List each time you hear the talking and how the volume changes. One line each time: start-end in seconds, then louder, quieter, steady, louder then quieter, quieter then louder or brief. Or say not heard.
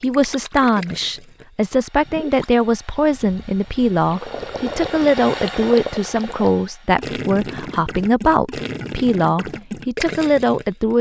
0.0-10.9 steady.